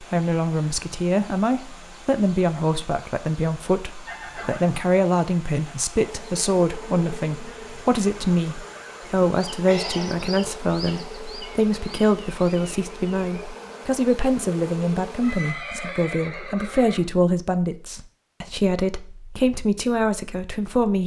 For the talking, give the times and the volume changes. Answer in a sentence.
You can hear the talking from 0.0 to 21.0 s, at a steady volume.